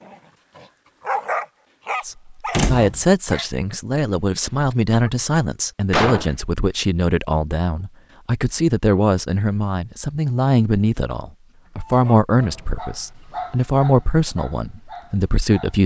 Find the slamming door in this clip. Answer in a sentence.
You can hear the slamming door from 2.5 to 3.1 s, from 5.9 to 6.5 s and from 12.3 to 13.1 s.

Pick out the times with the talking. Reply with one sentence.
The talking can be heard from 2.0 to 15.8 s.